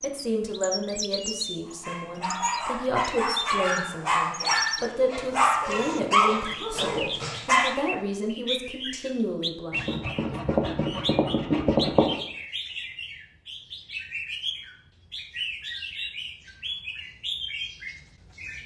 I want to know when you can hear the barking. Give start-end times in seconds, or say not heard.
1.6-7.8.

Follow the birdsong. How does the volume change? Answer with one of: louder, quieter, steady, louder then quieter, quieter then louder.
steady.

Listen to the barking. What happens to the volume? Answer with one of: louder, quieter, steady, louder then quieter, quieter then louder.
louder then quieter.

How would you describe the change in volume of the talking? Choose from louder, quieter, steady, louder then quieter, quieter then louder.
steady.